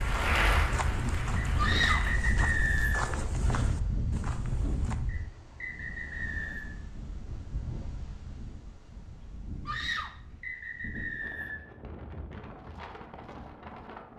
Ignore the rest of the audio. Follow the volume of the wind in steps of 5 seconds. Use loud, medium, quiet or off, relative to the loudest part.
loud, medium, medium.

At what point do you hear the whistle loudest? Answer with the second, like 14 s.
3 s.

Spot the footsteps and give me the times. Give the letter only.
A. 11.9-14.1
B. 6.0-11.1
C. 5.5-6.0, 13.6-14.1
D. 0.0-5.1
D.